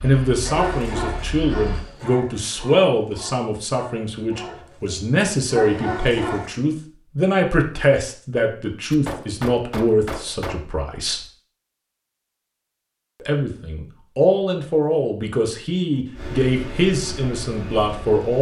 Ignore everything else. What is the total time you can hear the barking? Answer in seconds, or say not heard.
6 s.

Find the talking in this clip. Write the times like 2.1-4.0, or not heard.
0.0-11.2, 13.2-18.3.